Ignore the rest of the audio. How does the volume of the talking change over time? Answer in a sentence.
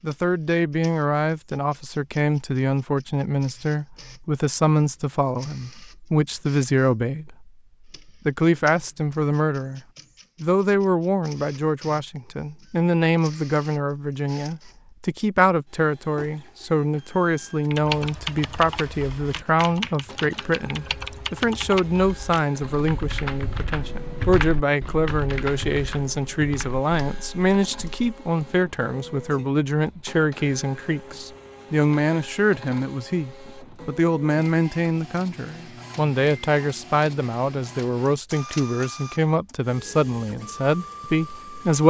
The volume of the talking stays about the same.